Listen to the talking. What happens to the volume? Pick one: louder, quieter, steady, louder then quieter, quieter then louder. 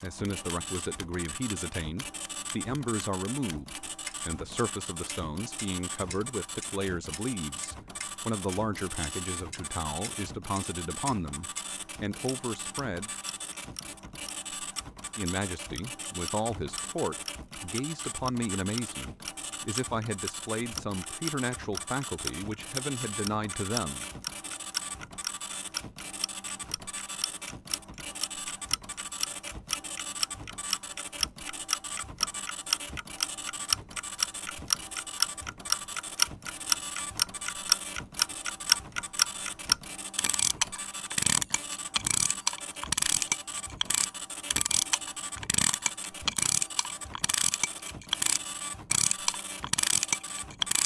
steady.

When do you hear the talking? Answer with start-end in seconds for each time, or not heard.
0.0-13.1, 15.2-24.1.